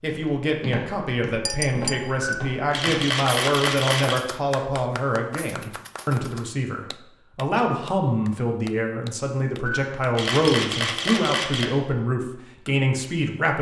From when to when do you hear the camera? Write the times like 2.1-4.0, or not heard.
2.2-4.2, 9.7-11.7.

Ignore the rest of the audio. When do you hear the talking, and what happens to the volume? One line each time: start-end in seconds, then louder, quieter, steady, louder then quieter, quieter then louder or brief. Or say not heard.
0.0-13.5 steady.